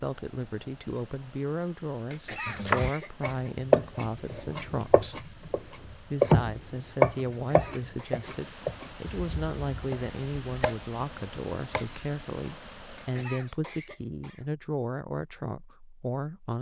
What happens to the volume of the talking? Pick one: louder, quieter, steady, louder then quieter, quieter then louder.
steady.